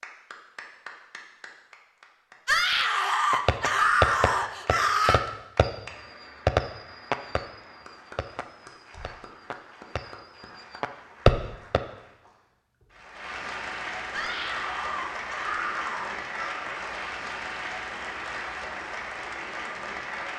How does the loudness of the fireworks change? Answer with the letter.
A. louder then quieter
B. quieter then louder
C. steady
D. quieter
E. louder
B.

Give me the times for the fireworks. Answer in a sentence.
The fireworks can be heard from 3.3 to 11.8 s.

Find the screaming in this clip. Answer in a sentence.
The screaming can be heard from 2.5 to 5.2 s and from 14.1 to 16.6 s.